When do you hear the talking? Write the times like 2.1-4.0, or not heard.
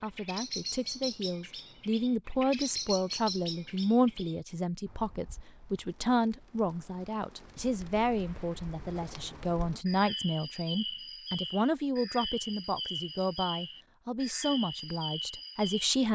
0.0-16.1.